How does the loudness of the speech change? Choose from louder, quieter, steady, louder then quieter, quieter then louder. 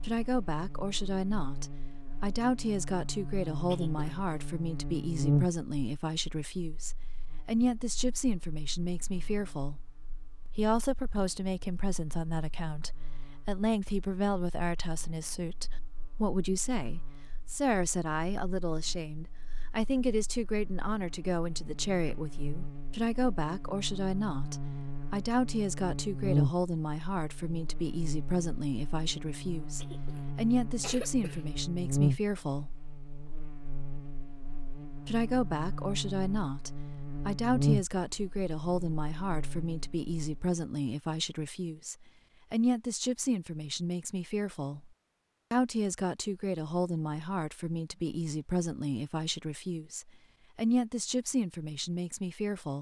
steady.